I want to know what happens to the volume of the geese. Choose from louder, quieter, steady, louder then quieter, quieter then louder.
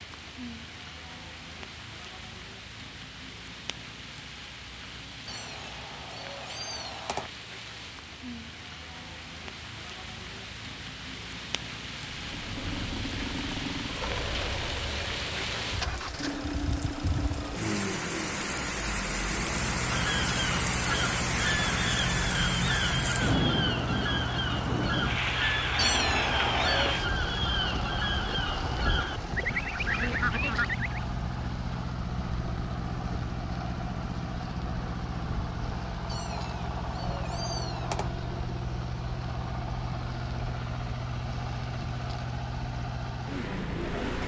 steady.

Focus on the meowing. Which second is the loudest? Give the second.
26 s.